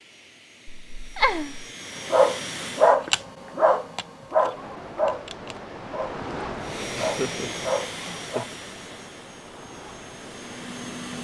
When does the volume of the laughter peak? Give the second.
1 s.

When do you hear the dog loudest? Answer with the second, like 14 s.
3 s.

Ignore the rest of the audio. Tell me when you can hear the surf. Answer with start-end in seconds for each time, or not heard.
4.5-11.1.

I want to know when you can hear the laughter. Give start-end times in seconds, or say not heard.
0.7-1.6, 7.0-8.6.